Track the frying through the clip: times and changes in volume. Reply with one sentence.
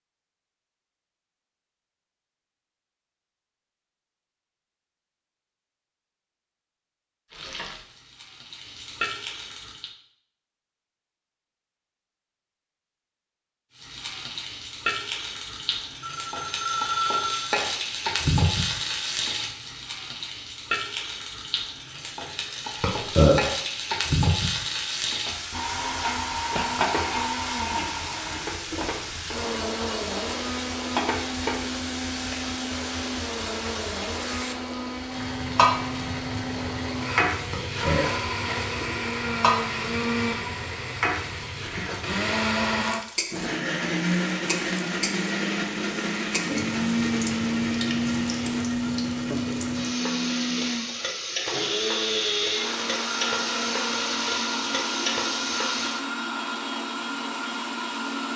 You can hear the frying briefly from 7.3 to 9.9 s; and from 13.8 to 56.0 s, at a steady volume.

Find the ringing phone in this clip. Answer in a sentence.
You can hear the ringing phone from 16.0 to 17.6 s.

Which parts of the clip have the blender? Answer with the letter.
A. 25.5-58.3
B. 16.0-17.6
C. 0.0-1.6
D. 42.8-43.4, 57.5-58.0
A.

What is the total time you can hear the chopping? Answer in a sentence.
The chopping can't be heard in this clip.